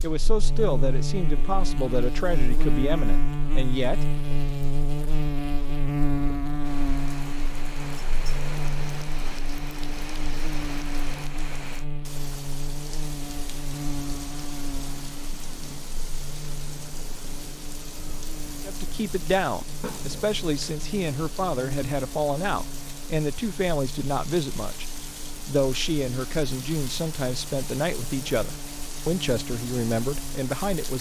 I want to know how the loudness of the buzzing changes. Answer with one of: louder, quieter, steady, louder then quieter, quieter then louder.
quieter.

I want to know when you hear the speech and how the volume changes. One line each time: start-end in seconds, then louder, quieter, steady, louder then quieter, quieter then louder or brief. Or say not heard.
0.0-4.0 quieter
18.6-30.9 steady.